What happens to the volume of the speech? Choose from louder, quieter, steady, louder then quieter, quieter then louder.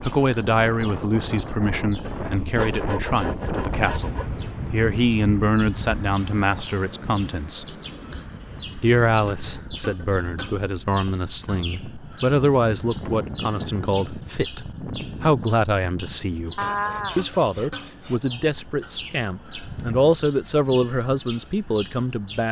steady.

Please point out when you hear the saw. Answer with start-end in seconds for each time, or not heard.
2.5-4.3, 16.6-18.6.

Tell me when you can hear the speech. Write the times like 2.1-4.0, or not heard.
0.0-7.7, 8.8-22.4.